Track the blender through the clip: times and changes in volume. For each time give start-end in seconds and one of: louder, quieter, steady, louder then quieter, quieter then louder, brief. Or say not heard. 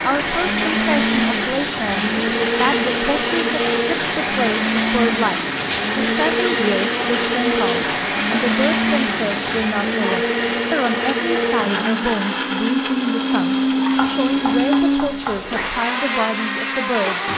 0.0-17.3 steady.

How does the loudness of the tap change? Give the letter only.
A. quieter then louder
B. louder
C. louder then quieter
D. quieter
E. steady
D.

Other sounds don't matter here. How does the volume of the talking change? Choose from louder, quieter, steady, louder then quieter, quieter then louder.
steady.